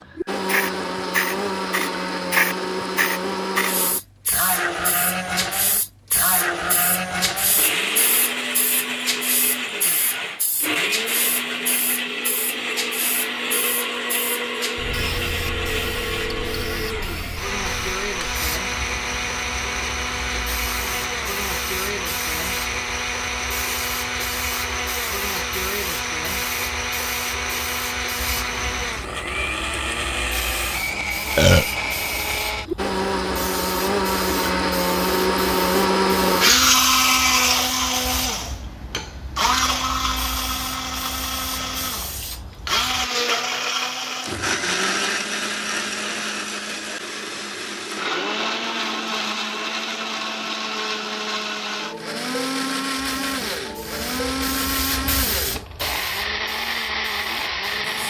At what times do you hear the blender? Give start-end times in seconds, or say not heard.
0.0-58.0.